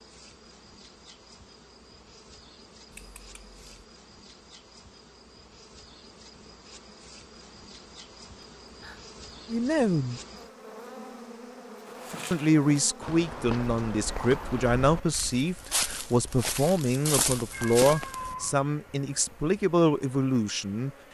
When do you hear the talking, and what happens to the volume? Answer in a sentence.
The talking can be heard briefly from 9.4 to 10.2 s; and from 12.3 to 20.9 s, at a steady volume.